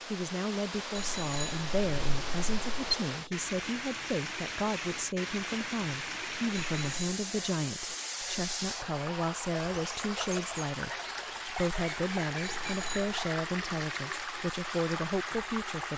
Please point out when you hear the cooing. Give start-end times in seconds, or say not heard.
not heard.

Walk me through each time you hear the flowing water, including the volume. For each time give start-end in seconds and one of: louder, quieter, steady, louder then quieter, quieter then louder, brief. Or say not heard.
0.0-15.9 steady.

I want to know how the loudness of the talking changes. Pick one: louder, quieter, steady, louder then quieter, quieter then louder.
steady.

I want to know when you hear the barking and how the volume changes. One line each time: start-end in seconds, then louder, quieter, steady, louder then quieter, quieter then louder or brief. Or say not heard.
not heard.